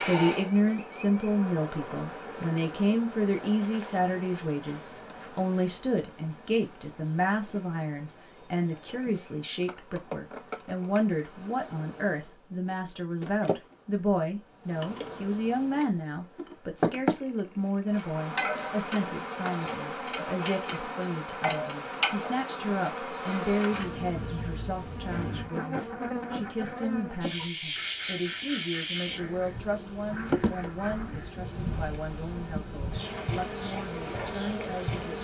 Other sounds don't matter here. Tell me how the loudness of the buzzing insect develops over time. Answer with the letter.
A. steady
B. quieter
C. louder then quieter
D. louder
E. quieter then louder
D.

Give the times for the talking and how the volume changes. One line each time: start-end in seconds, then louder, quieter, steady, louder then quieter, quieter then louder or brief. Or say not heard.
0.0-35.1 quieter.